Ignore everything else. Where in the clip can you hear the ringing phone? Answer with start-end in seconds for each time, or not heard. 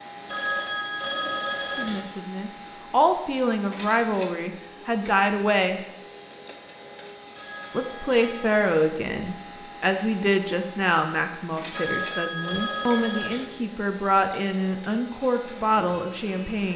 0.2-2.0, 7.3-8.6, 11.7-13.4.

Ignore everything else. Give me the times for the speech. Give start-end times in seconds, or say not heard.
1.6-5.8, 7.7-16.7.